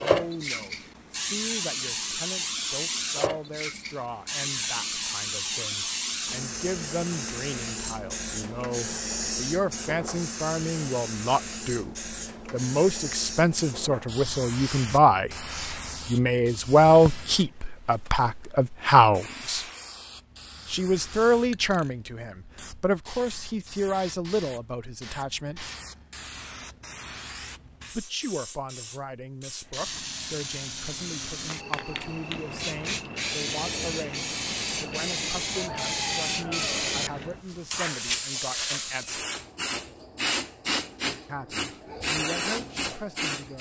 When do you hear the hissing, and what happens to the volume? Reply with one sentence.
The hissing can be heard from 0.0 to 43.5 s, getting quieter then louder.